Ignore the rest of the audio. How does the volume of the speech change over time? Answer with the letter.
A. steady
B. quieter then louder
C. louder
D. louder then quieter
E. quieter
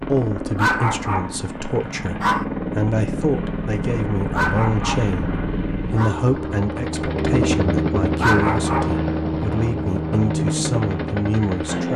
A.